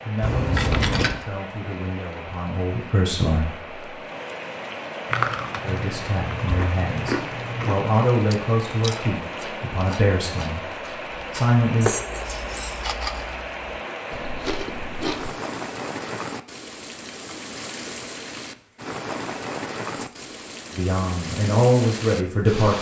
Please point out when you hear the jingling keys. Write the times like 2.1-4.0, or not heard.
0.2-1.2, 11.8-12.8, 19.9-20.4.